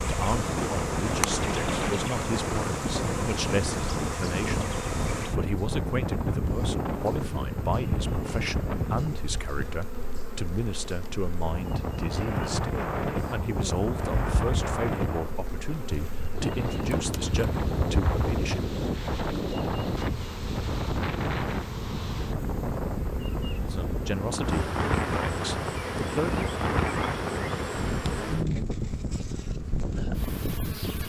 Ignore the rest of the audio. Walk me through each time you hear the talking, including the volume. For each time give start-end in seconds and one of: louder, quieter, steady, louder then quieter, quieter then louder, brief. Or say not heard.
0.0-18.8 steady
23.7-26.4 brief.